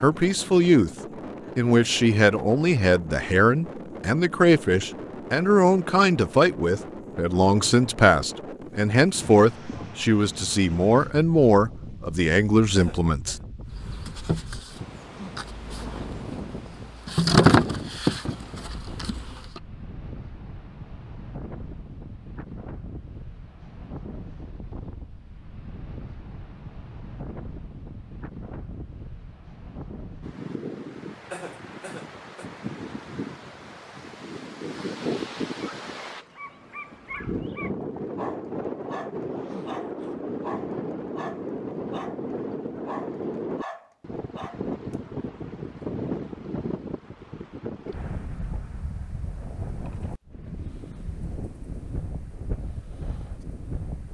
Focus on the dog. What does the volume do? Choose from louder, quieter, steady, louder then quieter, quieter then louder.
steady.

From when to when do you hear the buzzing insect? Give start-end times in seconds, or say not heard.
13.7-19.6.